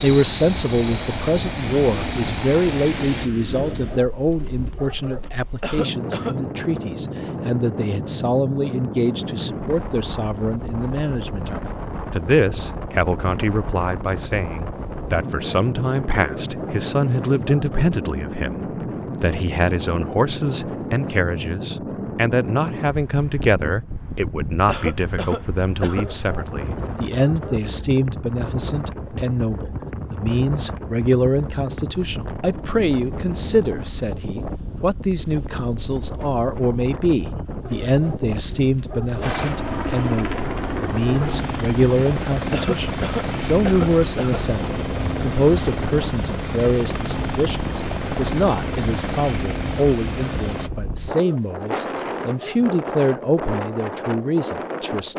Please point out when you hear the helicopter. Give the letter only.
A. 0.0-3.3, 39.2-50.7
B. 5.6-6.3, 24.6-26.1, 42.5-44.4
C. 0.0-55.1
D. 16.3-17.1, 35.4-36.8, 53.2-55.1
A.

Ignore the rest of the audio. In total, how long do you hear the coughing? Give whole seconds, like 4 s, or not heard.
4 s.